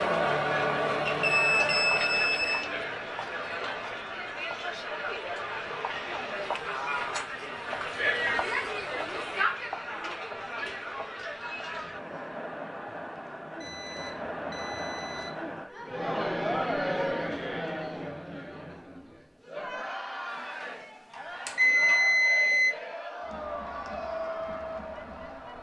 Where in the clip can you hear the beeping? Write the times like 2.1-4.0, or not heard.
1.1-2.7, 13.6-15.3, 20.6-22.8.